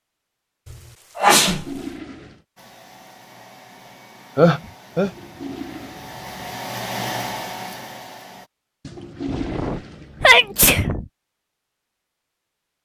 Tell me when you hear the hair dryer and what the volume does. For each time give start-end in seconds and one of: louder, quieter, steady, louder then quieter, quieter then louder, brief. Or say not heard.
2.5-8.5 louder.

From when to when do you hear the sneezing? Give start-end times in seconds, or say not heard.
0.7-1.6, 4.3-5.1, 9.2-11.1.